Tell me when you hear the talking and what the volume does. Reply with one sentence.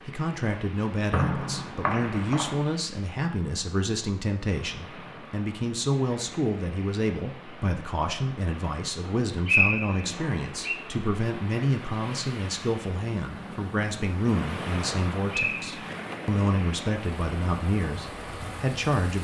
You can hear the talking from 0.1 to 19.1 s, at a steady volume.